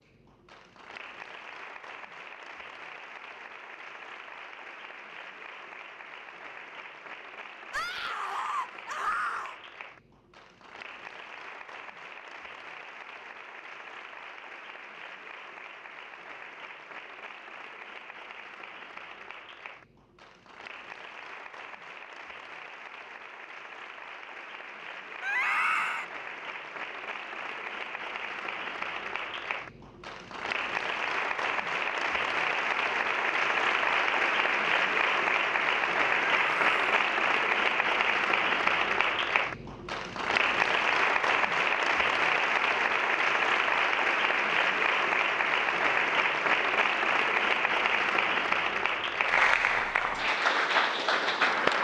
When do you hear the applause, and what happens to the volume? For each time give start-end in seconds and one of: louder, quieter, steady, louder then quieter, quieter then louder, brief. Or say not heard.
0.0-51.7 louder.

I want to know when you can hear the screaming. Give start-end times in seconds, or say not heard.
7.7-9.6, 25.2-26.1, 36.4-36.8.